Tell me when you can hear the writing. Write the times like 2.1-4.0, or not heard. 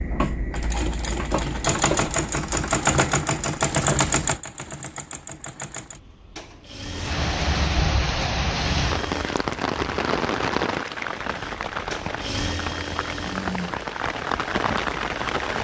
not heard.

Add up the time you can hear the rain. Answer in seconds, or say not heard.
9 s.